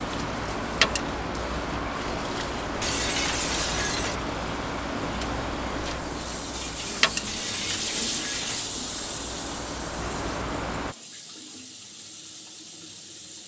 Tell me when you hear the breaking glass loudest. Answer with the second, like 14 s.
3 s.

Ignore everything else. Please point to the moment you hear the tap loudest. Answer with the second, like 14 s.
8 s.